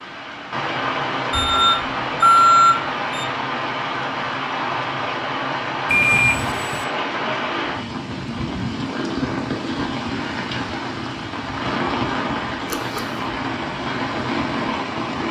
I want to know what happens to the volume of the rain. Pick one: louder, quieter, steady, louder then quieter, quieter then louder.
steady.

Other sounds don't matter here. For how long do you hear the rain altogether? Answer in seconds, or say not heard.
15 s.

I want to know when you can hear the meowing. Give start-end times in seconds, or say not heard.
not heard.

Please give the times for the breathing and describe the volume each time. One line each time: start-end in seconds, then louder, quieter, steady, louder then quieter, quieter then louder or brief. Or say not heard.
not heard.